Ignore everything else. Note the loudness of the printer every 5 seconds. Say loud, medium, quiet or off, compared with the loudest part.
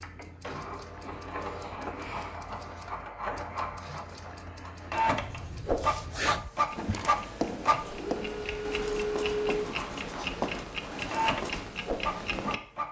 medium, loud, loud.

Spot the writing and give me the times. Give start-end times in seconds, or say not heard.
5.2-11.7.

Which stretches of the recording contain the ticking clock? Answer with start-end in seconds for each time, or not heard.
0.0-12.6.